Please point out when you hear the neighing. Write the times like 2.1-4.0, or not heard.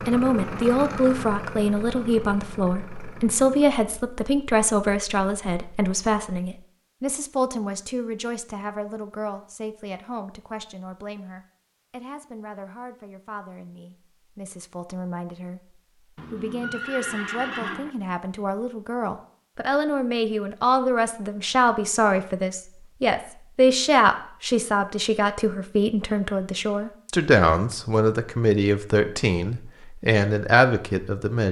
16.1-17.9.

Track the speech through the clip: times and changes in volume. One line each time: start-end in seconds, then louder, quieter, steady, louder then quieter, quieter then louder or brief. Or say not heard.
0.1-31.4 quieter then louder.